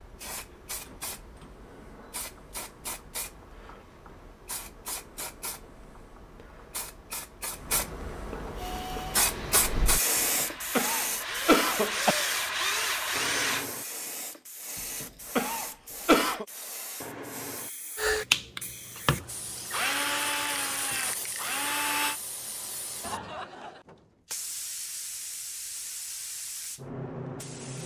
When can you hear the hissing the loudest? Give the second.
10 s.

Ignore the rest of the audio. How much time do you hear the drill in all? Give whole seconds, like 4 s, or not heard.
9 s.